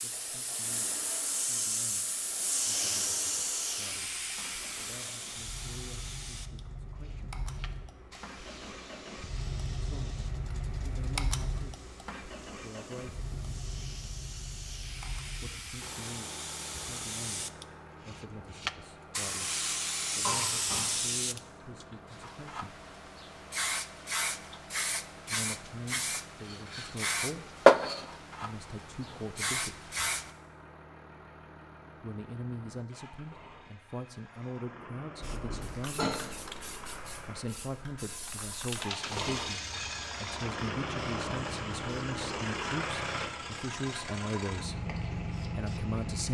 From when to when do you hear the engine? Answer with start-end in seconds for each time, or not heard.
0.0-46.3.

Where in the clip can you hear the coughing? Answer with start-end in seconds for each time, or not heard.
20.2-21.1, 35.5-36.2.